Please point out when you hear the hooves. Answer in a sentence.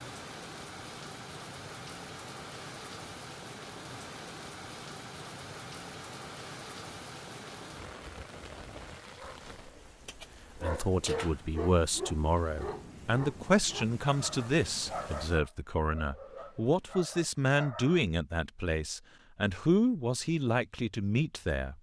The hooves can't be heard in this clip.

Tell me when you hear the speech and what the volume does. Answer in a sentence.
The speech can be heard from 10.6 to 21.7 s, at a steady volume.